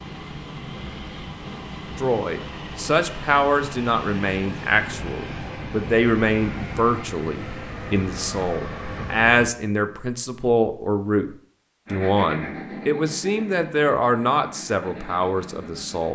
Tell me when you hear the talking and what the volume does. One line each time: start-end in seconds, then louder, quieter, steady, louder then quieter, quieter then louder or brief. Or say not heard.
1.9-16.1 steady.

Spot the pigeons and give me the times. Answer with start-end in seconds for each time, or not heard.
not heard.